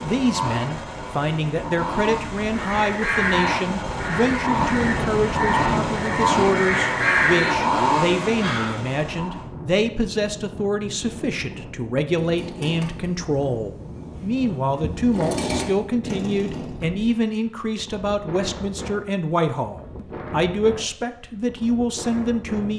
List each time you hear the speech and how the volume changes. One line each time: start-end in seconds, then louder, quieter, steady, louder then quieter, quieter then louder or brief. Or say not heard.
0.0-22.7 steady.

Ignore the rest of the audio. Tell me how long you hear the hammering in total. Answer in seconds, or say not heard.
not heard.